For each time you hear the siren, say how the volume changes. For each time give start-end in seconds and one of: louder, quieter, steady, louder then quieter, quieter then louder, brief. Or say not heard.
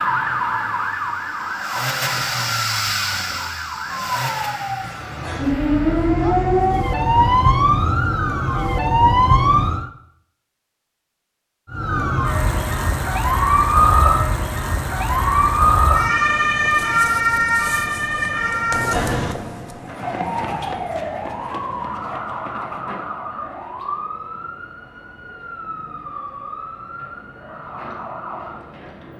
0.0-9.9 quieter then louder
11.7-29.1 quieter.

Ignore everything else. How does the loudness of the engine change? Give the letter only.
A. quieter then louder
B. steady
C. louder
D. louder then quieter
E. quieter
D.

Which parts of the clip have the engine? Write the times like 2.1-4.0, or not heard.
0.0-7.5.